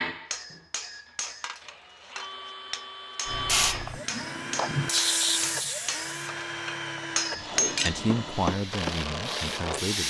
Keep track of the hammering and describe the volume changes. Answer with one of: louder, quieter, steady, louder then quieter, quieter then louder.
louder.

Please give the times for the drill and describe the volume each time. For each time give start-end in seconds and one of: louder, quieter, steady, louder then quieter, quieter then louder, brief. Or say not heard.
0.0-9.9 louder.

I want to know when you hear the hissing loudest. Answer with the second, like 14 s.
5 s.